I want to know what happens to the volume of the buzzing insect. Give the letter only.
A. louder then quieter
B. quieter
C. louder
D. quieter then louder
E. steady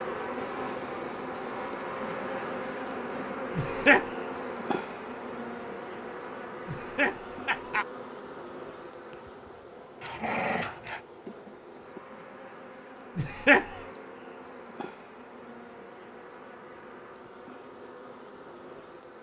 B.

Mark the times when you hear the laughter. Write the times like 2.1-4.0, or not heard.
3.5-4.0, 6.7-7.8, 13.2-13.8.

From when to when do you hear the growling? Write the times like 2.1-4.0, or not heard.
10.0-11.0.